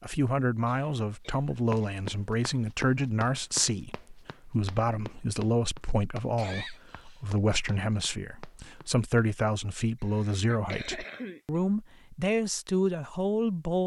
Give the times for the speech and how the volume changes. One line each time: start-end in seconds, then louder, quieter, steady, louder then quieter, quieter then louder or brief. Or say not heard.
0.0-13.8 steady.